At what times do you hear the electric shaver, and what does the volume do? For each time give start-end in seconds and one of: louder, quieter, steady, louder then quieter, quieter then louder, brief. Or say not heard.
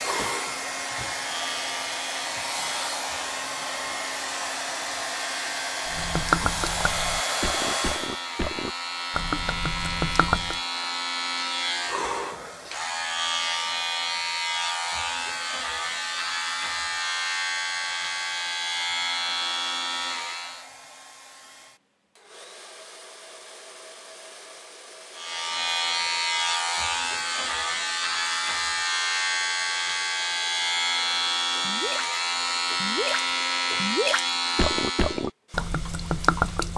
0.0-20.7 louder
25.1-35.3 steady.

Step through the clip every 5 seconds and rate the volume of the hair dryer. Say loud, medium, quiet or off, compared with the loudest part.
loud, loud, quiet, quiet, quiet, quiet, quiet, quiet.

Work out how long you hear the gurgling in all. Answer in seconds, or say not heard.
9 s.